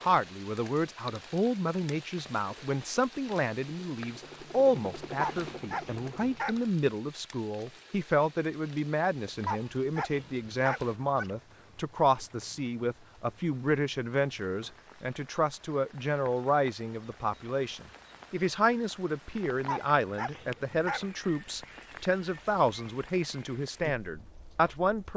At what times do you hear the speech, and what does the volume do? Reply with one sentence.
The speech can be heard from 0.0 to 25.1 s, at a steady volume.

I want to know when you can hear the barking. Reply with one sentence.
You can hear the barking from 5.0 to 6.7 s, from 9.2 to 11.3 s and from 19.5 to 21.1 s.